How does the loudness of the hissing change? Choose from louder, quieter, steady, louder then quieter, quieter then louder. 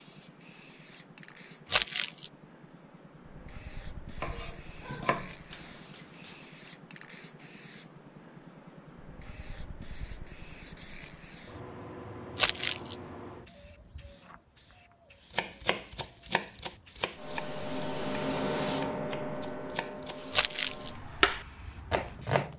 louder.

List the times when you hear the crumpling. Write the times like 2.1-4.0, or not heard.
1.7-2.3, 12.3-12.9, 20.3-20.9.